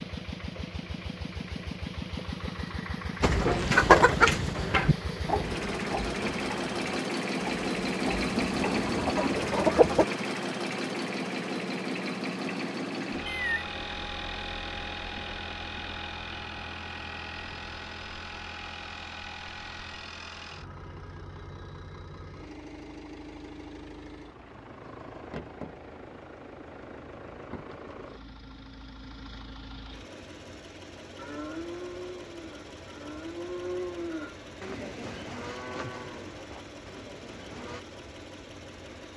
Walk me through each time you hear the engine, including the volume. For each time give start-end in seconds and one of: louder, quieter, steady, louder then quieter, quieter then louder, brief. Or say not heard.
0.0-39.1 quieter.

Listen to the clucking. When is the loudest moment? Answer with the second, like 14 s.
4 s.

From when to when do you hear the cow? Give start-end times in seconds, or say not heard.
31.1-37.9.